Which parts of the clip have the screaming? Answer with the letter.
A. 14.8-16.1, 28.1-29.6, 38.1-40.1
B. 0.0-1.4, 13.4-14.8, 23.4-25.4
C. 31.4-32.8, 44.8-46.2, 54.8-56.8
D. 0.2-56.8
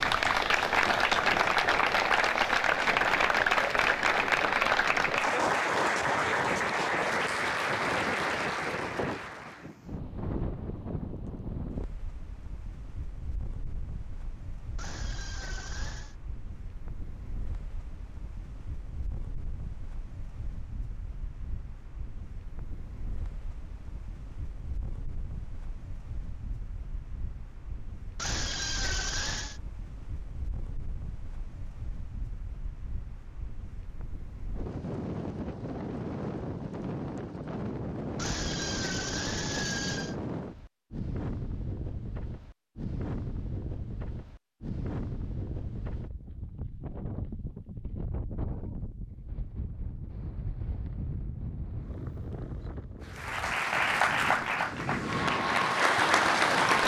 A.